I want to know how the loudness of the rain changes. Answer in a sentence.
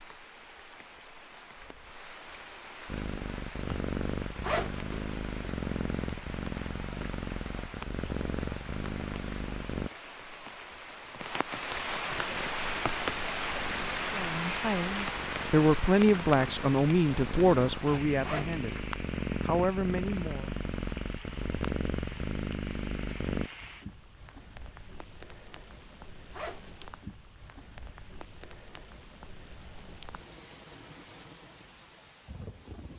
The volume of the rain goes up, then down.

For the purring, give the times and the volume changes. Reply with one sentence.
You can hear the purring from 2.9 to 9.9 s, at a steady volume; and from 12.3 to 23.5 s, getting louder.